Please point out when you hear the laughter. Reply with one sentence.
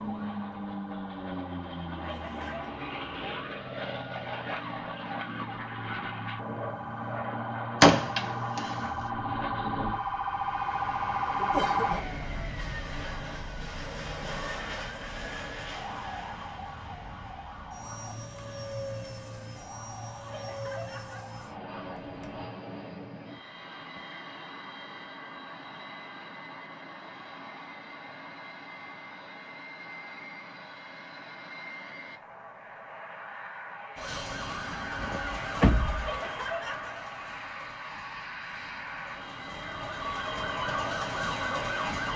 The laughter can be heard from 2.0 to 2.7 s, from 20.2 to 21.4 s and from 36.0 to 37.0 s.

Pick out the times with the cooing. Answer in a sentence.
You can't hear the cooing here.